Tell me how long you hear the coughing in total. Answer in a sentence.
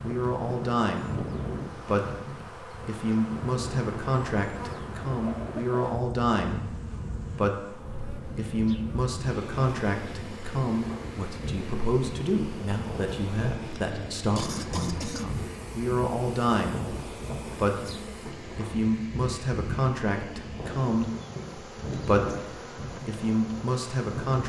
The coughing can be heard for 2 seconds in total.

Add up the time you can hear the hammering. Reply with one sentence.
The hammering can't be heard in this clip.